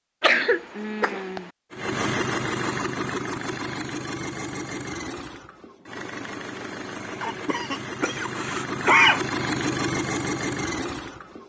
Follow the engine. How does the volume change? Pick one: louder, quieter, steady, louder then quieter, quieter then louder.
quieter then louder.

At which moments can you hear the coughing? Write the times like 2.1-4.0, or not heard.
0.2-1.5, 7.2-9.2.